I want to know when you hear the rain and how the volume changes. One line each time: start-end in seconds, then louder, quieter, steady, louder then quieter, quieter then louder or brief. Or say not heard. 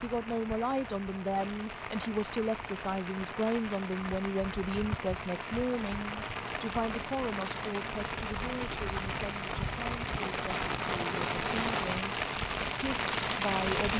0.0-13.9 louder.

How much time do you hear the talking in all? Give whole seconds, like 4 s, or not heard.
14 s.